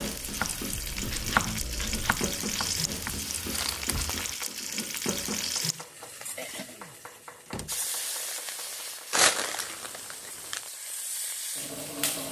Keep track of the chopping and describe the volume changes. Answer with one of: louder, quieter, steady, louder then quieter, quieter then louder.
quieter.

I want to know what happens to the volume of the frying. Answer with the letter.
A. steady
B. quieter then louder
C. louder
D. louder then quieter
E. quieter
E.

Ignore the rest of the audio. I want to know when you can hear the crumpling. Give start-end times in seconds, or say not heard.
2.6-4.3, 9.1-10.7.